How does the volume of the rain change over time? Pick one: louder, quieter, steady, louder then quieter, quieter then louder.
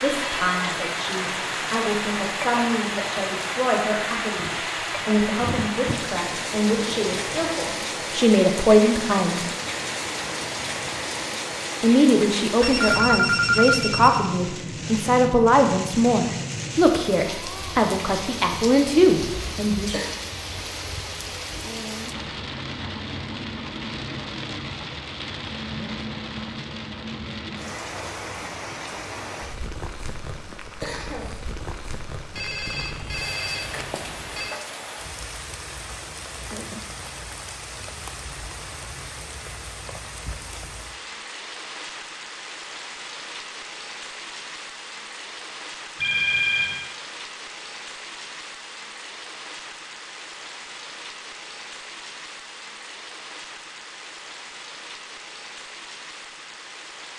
quieter.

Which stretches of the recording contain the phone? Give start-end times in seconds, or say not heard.
12.6-14.2, 32.4-34.5, 46.0-46.8.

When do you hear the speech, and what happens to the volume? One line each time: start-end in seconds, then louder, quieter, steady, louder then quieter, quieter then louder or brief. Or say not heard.
0.0-9.4 louder
11.8-20.0 steady.